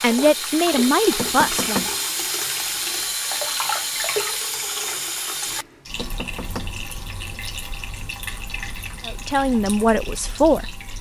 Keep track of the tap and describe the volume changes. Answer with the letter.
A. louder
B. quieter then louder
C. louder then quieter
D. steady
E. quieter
E.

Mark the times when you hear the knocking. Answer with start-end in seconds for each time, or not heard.
1.1-1.9, 6.0-6.8.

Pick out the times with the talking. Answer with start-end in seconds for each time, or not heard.
0.0-1.9, 9.1-10.8.